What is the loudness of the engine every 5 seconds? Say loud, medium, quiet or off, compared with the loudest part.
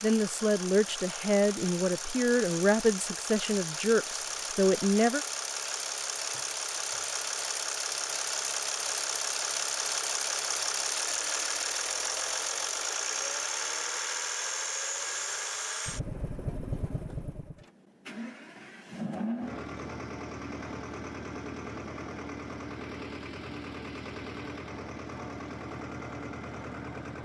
medium, loud, loud, medium, medium, medium.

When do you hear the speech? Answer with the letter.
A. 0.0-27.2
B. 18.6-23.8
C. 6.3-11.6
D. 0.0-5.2
D.